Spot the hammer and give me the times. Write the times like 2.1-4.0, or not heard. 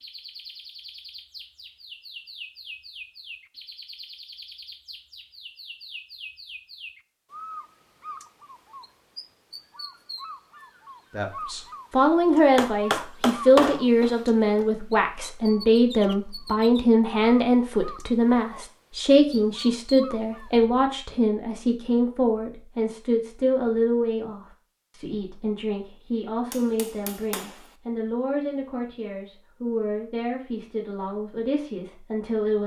12.3-14.7, 26.5-27.6.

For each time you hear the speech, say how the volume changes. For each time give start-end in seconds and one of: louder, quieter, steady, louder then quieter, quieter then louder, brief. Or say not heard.
11.2-32.6 quieter.